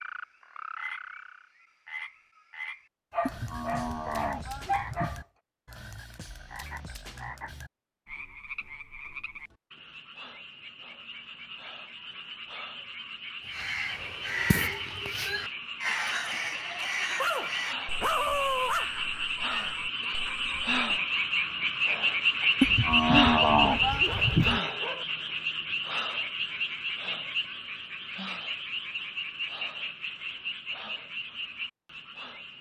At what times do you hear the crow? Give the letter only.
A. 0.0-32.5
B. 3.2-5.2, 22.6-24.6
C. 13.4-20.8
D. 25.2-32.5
C.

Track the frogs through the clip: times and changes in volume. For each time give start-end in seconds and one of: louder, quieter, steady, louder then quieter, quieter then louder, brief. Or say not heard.
0.0-32.5 louder then quieter.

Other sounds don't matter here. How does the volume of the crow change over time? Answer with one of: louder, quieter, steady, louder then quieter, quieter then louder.
quieter.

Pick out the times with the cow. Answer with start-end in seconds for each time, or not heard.
3.2-5.2, 22.6-24.6.